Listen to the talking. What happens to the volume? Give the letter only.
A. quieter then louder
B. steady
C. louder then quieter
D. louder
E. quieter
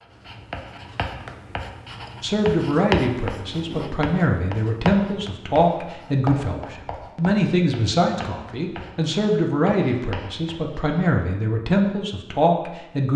B.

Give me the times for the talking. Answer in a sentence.
You can hear the talking from 2.2 to 13.1 s.